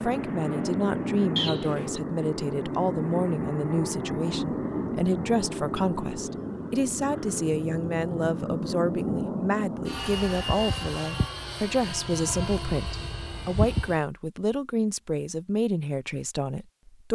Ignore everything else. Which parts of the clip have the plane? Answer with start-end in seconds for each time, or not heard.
0.0-14.1.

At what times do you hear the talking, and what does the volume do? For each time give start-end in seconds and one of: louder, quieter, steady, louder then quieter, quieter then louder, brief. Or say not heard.
0.0-17.1 steady.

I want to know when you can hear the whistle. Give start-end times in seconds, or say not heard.
1.4-2.0.